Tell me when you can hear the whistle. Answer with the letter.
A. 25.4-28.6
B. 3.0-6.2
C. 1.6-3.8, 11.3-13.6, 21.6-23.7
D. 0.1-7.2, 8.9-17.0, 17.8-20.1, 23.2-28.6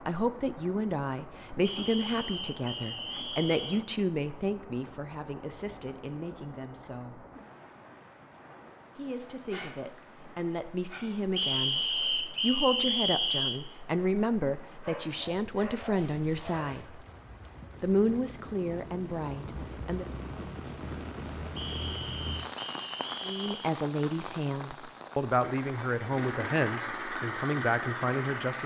C.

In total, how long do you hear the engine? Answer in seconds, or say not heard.
3 s.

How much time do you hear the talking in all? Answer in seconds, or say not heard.
23 s.